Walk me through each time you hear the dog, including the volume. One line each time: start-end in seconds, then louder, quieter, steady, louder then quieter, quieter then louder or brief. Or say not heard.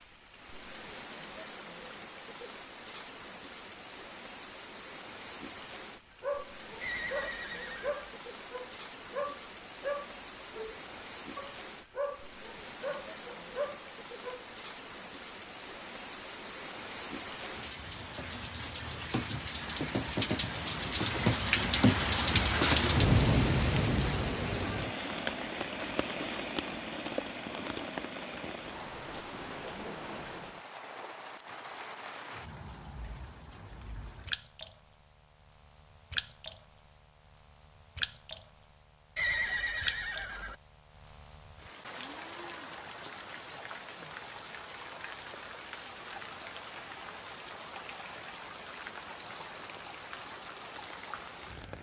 6.2-14.4 steady.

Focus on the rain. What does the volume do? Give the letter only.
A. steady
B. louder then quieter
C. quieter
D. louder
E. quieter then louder
B.